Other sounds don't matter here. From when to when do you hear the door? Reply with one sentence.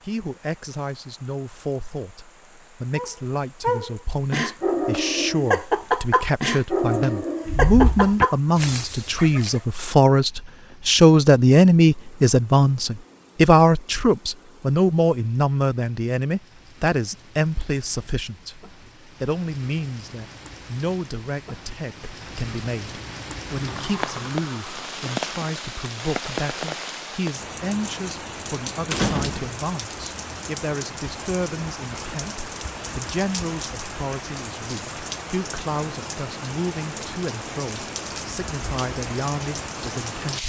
You can hear the door from 7.5 to 8.2 s, from 23.5 to 25.1 s and from 28.9 to 29.6 s.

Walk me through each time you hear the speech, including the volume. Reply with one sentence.
The speech can be heard from 0.0 to 40.4 s, getting louder then quieter.